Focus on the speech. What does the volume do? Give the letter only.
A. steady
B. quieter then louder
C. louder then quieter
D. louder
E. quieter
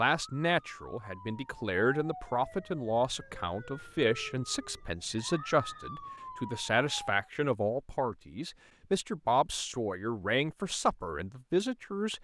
A.